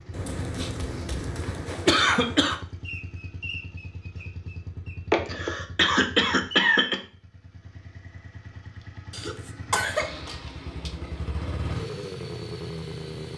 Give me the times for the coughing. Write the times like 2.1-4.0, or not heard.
0.1-2.5, 5.1-7.0, 9.1-10.2.